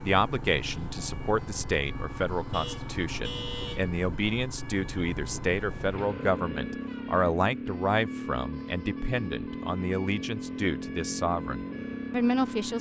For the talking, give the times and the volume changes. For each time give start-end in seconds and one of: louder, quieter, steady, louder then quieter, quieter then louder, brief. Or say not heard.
0.0-12.7 steady.